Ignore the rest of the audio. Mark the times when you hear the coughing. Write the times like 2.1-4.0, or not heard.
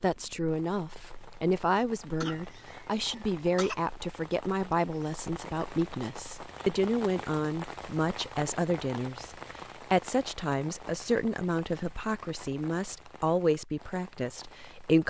2.2-3.8.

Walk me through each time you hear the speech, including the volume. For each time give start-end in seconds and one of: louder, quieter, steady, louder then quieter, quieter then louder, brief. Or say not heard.
0.0-15.0 steady.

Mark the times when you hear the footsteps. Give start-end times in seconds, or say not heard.
not heard.